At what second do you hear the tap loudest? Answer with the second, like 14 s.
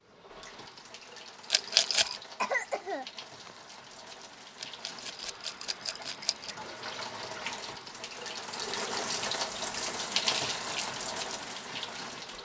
10 s.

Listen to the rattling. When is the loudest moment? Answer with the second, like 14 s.
2 s.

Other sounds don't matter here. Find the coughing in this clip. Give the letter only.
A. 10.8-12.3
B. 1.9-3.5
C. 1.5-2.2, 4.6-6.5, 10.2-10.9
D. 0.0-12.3
B.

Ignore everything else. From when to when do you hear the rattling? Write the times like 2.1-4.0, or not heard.
1.5-2.2, 4.6-6.5, 10.2-10.9.